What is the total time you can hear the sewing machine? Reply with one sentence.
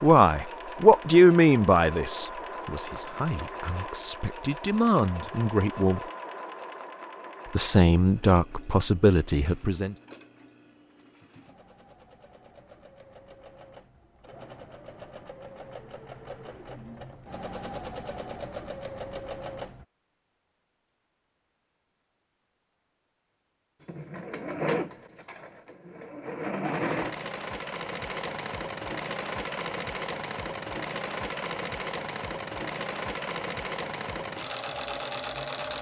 You can hear the sewing machine for 32 seconds altogether.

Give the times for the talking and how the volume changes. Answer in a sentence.
You can hear the talking from 0.0 to 6.0 s, getting quieter then louder; and briefly from 7.5 to 9.9 s.